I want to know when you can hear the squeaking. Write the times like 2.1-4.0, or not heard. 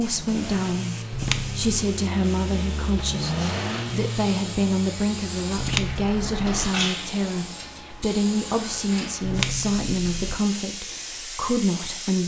1.1-1.9, 5.5-6.7, 9.2-10.3.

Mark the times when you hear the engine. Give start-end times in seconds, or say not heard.
0.0-7.0.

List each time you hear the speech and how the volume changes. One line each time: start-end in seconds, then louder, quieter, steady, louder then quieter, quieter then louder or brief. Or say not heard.
0.0-12.2 steady.